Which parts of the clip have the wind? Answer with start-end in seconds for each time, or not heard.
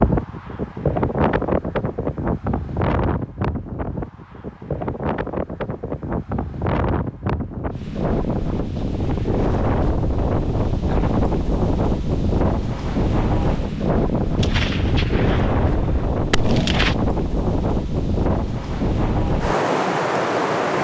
0.0-20.7.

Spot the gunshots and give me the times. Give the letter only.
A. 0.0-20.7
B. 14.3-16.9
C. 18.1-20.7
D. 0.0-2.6
B.